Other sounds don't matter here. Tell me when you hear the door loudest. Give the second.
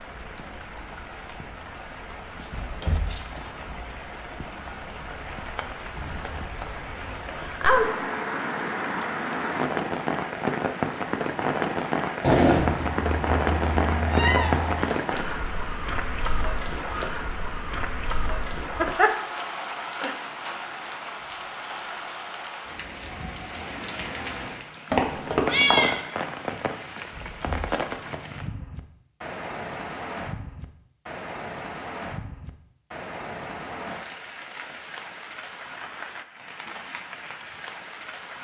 3 s.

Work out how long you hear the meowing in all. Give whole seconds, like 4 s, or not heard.
4 s.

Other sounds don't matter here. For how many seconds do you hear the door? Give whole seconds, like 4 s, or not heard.
2 s.